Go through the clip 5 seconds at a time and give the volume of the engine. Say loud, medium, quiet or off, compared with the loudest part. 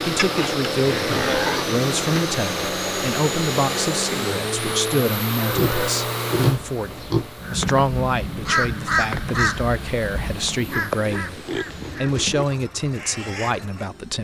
loud, medium, quiet.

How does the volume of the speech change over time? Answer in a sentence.
The loudness of the speech stays about the same.